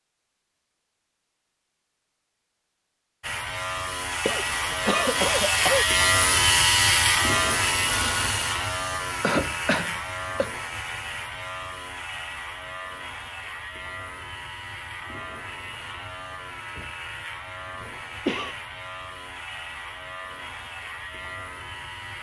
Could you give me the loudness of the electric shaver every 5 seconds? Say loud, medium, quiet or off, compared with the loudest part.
medium, loud, quiet, quiet, quiet.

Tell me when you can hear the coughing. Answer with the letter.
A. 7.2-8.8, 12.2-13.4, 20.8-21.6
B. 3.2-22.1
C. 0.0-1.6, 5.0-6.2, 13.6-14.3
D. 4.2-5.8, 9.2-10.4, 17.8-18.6
D.